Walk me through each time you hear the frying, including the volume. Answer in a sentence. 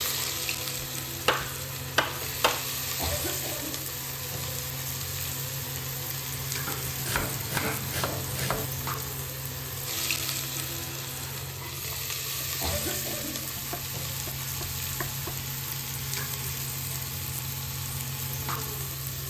The frying can be heard from 0.0 to 19.2 s, at a steady volume.